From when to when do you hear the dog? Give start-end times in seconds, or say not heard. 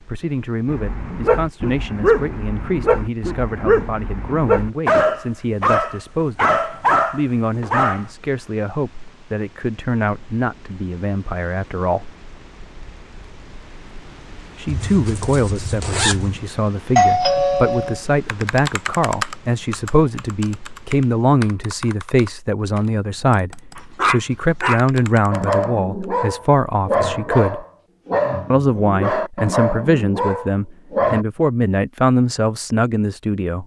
0.7-8.1, 23.8-31.2.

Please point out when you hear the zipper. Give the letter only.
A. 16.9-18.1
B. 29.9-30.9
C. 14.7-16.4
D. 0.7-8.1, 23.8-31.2
C.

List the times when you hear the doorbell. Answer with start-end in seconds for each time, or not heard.
16.9-18.1.